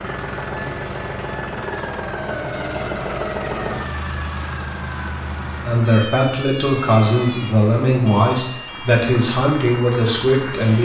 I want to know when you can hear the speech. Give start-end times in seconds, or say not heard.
5.7-10.8.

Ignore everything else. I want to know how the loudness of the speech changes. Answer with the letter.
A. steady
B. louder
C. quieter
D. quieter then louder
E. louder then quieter
A.